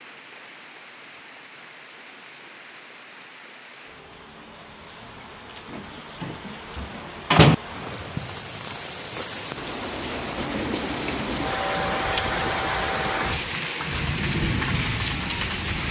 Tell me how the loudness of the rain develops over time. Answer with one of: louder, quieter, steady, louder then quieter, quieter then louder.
louder.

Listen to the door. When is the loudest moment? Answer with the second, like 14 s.
7 s.